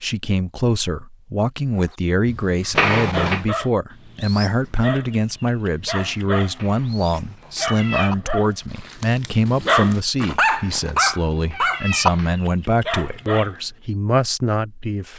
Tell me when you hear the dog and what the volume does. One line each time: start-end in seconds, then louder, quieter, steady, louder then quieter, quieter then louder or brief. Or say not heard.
1.8-13.6 louder.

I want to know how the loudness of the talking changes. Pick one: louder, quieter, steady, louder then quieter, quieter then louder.
steady.